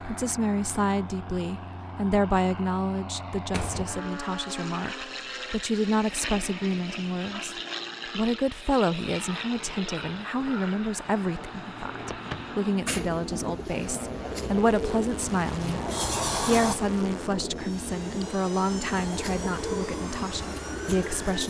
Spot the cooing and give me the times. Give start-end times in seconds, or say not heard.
12.8-21.4.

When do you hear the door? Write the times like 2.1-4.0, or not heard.
3.5-4.3, 12.1-12.6, 15.6-16.8.